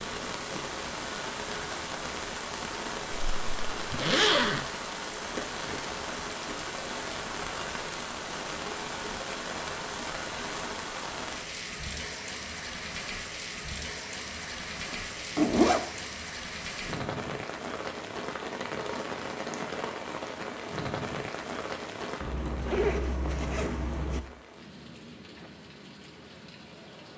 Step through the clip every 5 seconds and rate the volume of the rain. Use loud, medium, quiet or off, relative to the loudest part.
loud, loud, loud, loud, loud, quiet.